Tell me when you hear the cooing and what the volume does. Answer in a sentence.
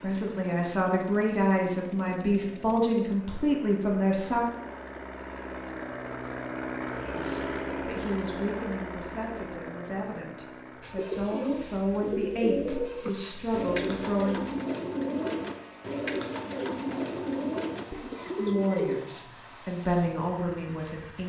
The cooing can be heard from 10.8 to 19.1 s, at a steady volume.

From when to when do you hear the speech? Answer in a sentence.
You can hear the speech from 0.0 to 4.5 s, from 7.2 to 14.4 s and from 18.4 to 21.2 s.